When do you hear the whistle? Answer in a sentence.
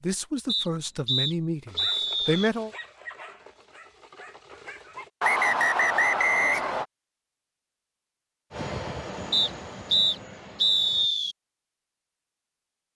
You can hear the whistle from 0.5 to 2.5 s, from 5.2 to 6.8 s and from 9.3 to 11.3 s.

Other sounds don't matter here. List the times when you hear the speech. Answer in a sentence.
You can hear the speech from 0.0 to 2.7 s.